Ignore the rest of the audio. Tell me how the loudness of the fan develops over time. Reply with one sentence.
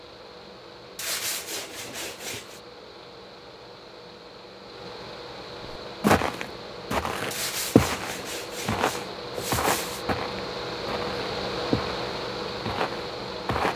The volume of the fan goes up.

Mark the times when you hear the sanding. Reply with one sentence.
The sanding can be heard from 0.9 to 2.6 s and from 7.3 to 10.1 s.